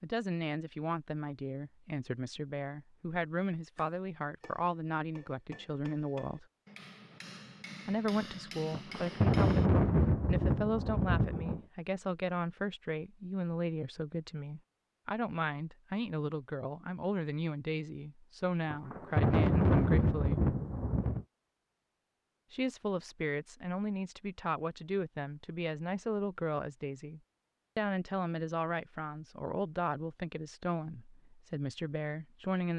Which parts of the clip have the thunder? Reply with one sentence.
The thunder can be heard from 8.7 to 11.6 s and from 18.7 to 21.2 s.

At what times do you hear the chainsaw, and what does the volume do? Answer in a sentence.
You can't hear the chainsaw here.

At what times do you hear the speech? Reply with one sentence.
You can hear the speech from 0.0 to 6.5 s, from 7.8 to 20.5 s and from 22.5 to 32.7 s.